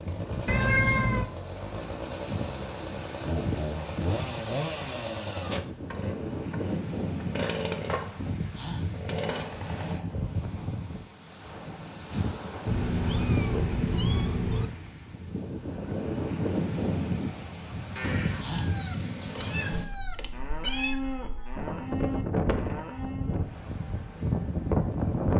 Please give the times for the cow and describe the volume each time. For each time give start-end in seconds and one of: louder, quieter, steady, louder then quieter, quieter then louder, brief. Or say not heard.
17.2-23.4 steady.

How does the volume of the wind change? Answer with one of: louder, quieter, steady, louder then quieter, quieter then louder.
louder.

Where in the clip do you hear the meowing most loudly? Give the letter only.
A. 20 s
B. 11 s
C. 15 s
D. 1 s
D.